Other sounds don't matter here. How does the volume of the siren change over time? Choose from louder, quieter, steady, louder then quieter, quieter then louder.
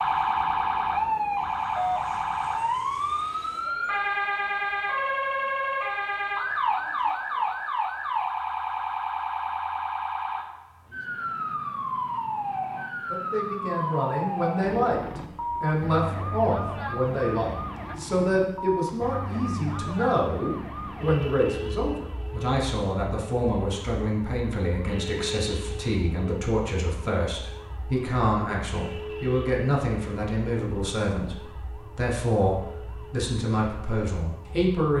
quieter.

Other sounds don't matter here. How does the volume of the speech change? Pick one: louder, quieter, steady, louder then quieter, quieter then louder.
steady.